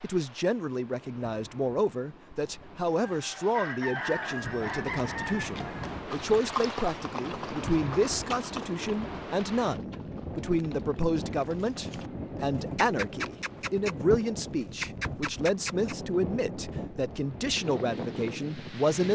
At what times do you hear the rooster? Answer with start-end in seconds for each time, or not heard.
3.0-5.8.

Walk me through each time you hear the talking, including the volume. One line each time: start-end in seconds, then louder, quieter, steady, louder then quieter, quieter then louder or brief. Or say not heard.
0.0-19.0 steady.